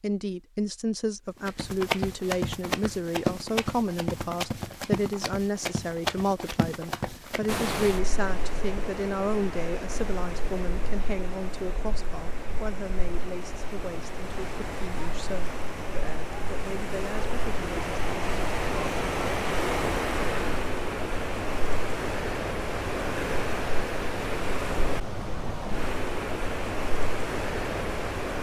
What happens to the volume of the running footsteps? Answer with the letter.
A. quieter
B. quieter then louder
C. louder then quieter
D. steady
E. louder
A.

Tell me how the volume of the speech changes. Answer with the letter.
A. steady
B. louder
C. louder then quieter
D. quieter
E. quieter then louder
D.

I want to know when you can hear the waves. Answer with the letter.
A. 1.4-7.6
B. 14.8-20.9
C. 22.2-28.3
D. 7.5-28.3
D.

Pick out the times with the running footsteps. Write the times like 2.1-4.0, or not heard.
1.4-7.6.